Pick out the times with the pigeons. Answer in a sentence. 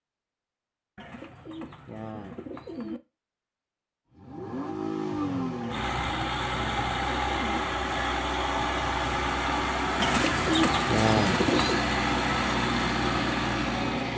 The pigeons can be heard from 0.9 to 3.0 s, from 5.6 to 7.7 s and from 9.9 to 11.8 s.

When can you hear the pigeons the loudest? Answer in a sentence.
The loudest moment of the pigeons is at 11 seconds.